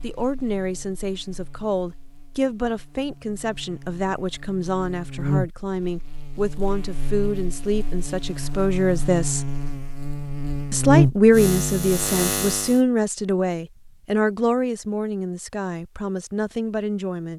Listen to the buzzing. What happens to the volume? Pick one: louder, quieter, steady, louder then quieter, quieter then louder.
louder.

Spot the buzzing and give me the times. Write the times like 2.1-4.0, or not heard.
0.0-12.8.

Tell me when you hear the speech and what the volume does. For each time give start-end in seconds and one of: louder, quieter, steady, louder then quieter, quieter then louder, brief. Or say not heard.
0.0-9.5 steady
10.7-17.3 quieter.